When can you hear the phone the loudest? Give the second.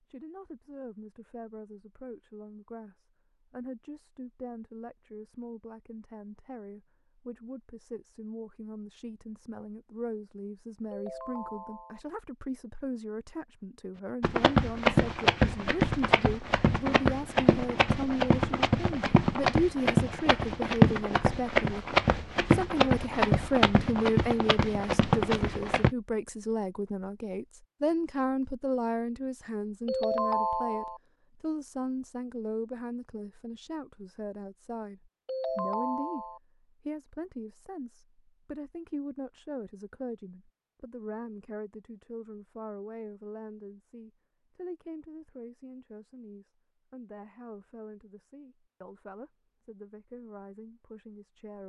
30 s.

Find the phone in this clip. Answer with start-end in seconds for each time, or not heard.
10.9-12.0, 29.9-31.0, 35.2-36.4.